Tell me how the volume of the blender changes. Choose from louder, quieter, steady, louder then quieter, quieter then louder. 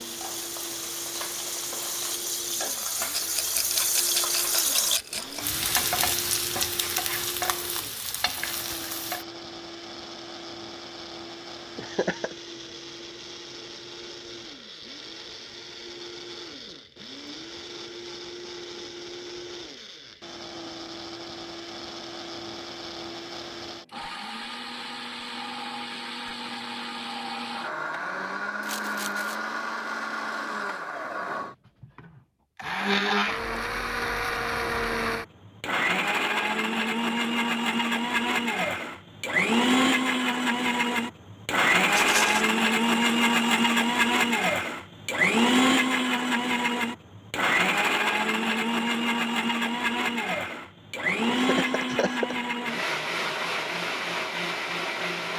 louder.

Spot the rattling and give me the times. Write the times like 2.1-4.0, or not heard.
3.1-5.4, 28.6-29.4, 41.9-42.5.